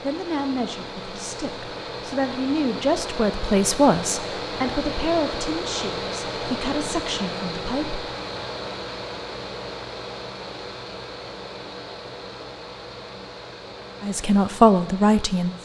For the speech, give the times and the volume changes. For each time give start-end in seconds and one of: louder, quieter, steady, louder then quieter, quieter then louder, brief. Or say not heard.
0.0-8.0 louder then quieter
14.0-15.6 brief.